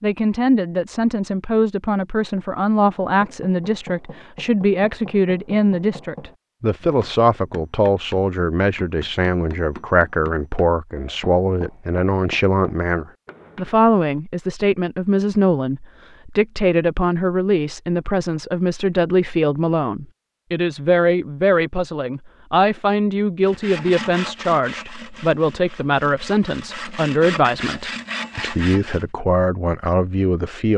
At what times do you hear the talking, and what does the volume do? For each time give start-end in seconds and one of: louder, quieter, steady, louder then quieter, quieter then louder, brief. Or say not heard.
0.0-30.7 steady.